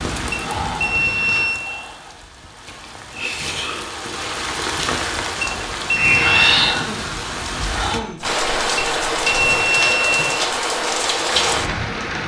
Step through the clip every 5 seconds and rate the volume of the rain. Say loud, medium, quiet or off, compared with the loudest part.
medium, loud, loud.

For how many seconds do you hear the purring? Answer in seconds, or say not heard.
not heard.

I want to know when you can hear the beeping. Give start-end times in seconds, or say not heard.
0.3-1.7, 5.4-6.7, 8.8-10.2.